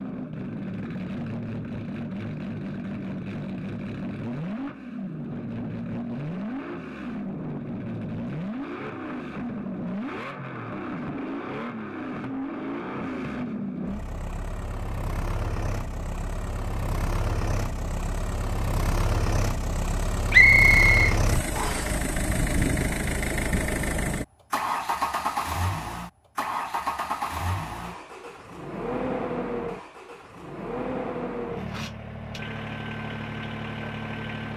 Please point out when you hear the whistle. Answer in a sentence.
You can hear the whistle from 20.3 to 21.9 s.